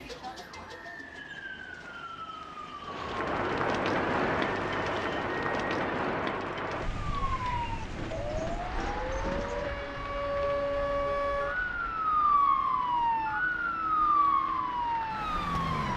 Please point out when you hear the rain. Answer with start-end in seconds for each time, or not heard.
2.8-15.9.